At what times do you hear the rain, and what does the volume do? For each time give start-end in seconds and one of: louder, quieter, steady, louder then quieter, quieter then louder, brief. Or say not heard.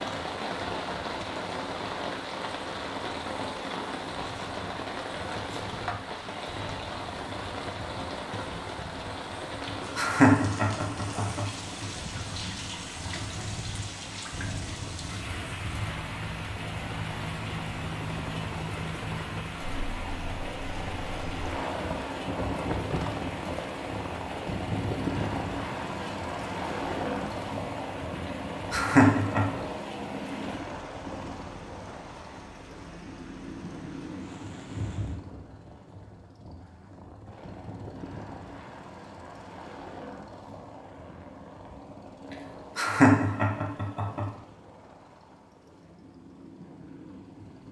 0.0-35.2 quieter.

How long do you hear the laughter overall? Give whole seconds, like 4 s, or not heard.
6 s.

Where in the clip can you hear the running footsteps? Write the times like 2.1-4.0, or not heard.
not heard.